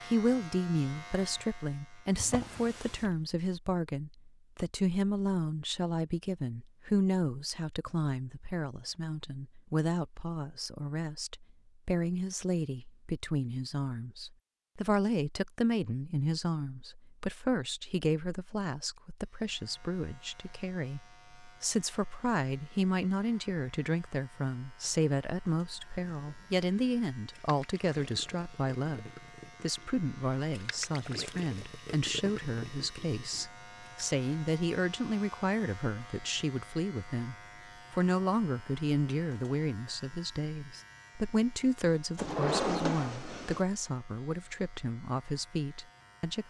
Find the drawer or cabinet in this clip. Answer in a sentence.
You can hear the drawer or cabinet from 2.1 to 3.2 s and from 42.1 to 43.6 s.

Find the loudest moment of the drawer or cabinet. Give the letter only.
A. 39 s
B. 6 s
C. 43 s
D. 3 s
C.